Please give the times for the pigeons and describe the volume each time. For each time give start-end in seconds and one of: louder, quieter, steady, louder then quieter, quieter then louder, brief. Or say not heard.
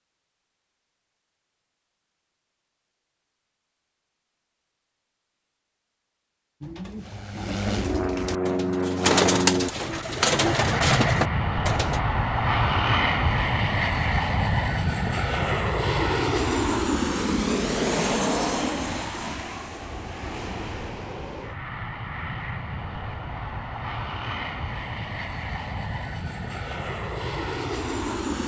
6.6-12.0 louder.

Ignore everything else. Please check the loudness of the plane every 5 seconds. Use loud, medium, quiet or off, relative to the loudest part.
off, loud, loud, loud, medium, medium.